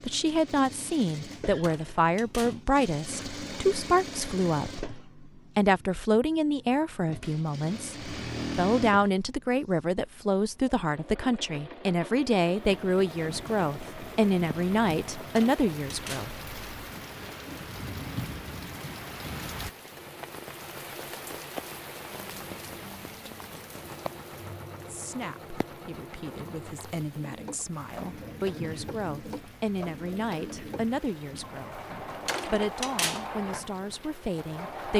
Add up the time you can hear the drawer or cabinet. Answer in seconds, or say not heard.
3 s.